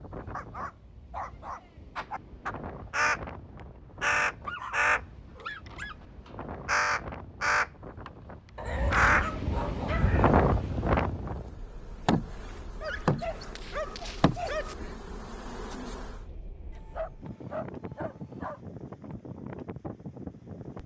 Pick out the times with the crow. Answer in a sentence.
The crow can be heard from 1.9 to 3.2 s, from 4.0 to 5.0 s, from 5.7 to 8.1 s and from 8.9 to 10.3 s.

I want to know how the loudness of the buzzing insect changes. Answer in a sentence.
The volume of the buzzing insect goes up, then down.